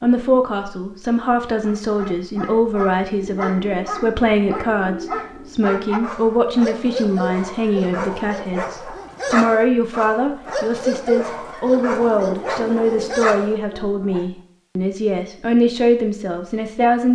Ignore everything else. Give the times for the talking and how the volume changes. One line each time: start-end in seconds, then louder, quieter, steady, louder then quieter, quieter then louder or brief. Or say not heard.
0.0-17.1 steady.